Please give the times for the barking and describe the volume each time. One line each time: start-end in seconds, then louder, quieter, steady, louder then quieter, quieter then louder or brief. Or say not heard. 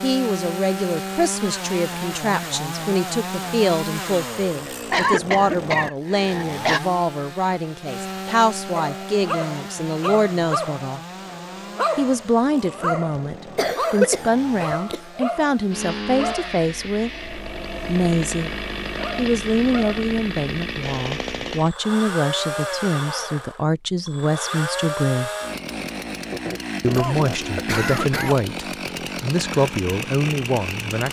8.2-20.1 quieter.